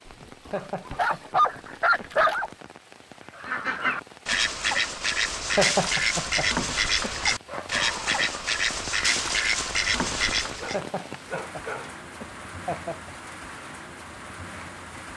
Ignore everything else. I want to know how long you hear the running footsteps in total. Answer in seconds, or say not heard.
not heard.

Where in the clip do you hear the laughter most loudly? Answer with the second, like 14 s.
6 s.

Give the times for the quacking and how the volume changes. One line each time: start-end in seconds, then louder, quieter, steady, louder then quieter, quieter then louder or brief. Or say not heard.
3.3-10.8 steady.